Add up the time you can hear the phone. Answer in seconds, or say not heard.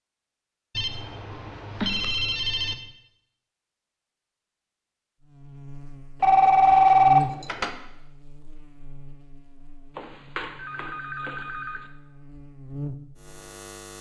5 s.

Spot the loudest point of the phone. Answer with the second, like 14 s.
7 s.